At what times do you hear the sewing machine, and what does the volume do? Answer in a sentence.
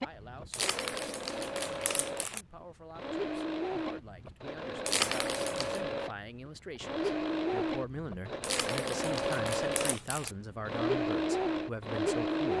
The sewing machine can be heard from 0.0 to 12.5 s, getting louder.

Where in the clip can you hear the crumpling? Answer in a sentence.
You can hear the crumpling from 0.5 to 2.5 s, from 4.8 to 5.8 s and from 8.4 to 10.3 s.